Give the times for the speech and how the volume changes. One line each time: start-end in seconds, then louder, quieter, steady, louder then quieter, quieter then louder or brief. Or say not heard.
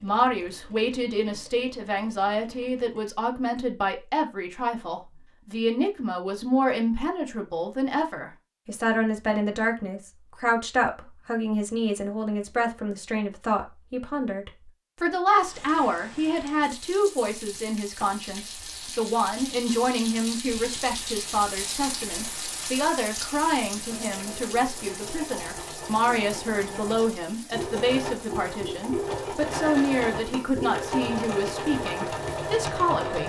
0.0-33.2 steady.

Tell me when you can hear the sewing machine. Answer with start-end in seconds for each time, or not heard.
0.0-3.0, 23.9-33.2.